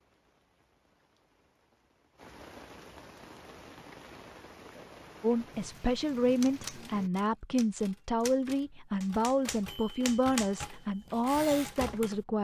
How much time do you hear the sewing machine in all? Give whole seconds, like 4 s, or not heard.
not heard.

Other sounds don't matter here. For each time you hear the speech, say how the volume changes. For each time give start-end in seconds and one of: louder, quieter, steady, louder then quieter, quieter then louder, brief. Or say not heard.
5.2-12.3 steady.